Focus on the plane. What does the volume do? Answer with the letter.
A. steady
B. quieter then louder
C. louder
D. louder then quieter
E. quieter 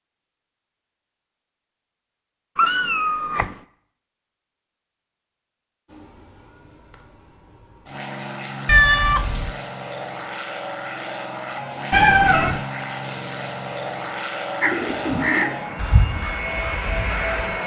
C.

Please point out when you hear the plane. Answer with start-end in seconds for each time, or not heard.
5.8-17.6.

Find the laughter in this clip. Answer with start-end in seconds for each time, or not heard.
not heard.